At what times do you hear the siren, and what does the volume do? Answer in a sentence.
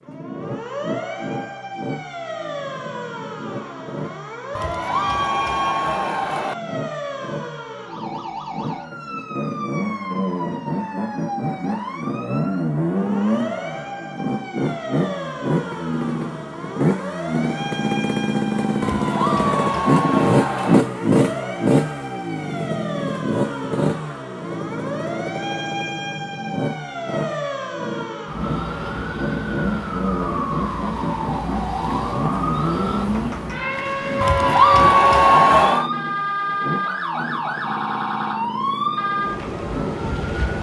The siren can be heard from 0.0 to 40.5 s, getting louder.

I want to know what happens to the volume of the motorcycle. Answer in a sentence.
The volume of the motorcycle goes up, then down.